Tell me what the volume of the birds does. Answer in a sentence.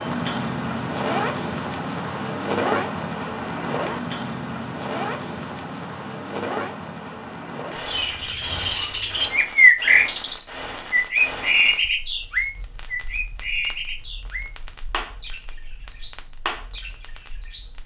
The loudness of the birds goes down.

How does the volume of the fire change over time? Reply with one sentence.
The loudness of the fire goes down.